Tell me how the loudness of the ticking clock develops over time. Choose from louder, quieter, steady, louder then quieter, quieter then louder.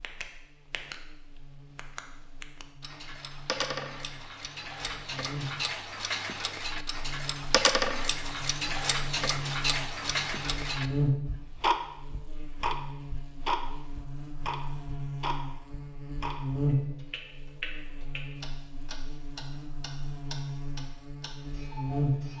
louder then quieter.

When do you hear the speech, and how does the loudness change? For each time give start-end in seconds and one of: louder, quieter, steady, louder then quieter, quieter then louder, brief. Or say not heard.
not heard.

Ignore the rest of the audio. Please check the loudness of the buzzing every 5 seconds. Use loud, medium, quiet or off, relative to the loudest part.
quiet, medium, loud, loud, loud.